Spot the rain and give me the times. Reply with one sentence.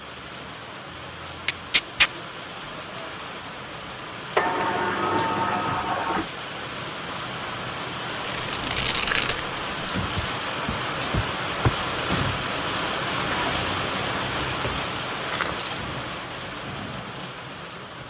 The rain can be heard from 0.0 to 18.0 s.